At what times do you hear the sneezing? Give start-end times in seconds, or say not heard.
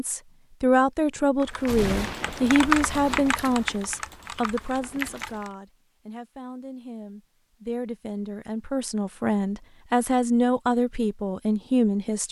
not heard.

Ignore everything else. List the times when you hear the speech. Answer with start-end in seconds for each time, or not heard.
0.0-12.2.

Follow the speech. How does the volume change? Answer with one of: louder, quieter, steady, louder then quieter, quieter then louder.
quieter then louder.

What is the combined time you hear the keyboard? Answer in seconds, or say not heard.
4 s.